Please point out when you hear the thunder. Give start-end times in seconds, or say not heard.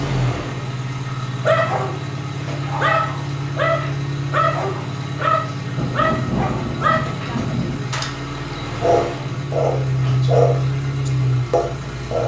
5.8-7.8.